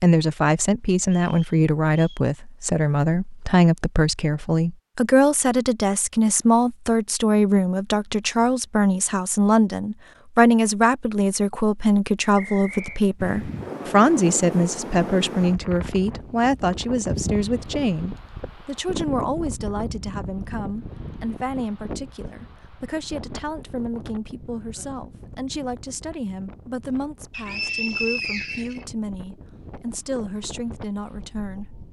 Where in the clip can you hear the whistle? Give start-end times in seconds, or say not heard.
1.0-2.2, 12.3-13.0, 27.3-28.9.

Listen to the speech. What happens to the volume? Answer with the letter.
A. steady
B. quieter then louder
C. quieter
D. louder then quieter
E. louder
C.